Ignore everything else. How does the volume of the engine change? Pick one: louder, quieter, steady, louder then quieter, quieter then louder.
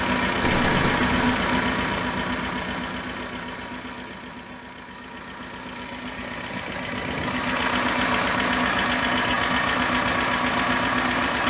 quieter then louder.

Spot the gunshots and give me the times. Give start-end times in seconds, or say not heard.
0.4-1.4.